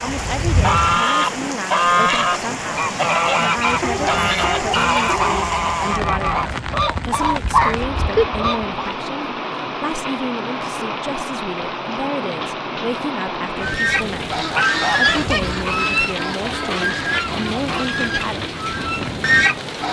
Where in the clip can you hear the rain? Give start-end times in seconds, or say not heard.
0.0-19.8.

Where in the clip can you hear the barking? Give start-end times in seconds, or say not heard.
3.8-5.5.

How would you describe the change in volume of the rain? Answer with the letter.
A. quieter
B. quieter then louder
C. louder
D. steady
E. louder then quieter
D.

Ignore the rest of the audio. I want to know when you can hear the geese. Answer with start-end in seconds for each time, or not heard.
0.0-9.0, 13.6-19.8.